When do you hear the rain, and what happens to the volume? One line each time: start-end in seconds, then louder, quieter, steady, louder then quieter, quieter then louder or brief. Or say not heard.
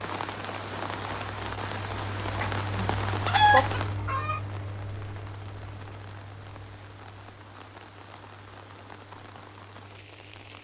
0.0-10.5 quieter.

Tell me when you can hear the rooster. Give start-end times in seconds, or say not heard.
2.4-4.4.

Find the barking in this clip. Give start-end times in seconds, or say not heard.
not heard.